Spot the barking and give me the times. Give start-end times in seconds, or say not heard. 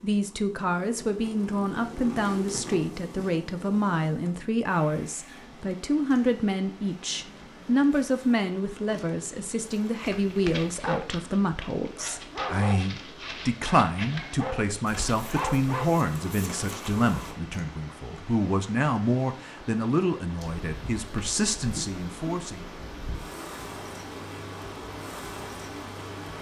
10.2-16.1.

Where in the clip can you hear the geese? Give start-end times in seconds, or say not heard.
not heard.